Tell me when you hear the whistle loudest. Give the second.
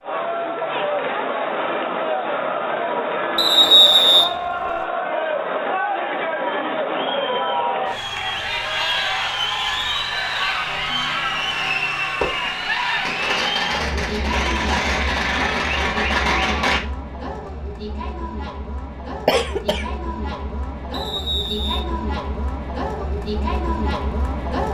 4 s.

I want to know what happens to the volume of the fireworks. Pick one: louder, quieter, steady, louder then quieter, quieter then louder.
louder.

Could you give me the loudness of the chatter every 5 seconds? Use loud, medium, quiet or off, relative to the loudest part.
loud, loud, loud, medium, medium.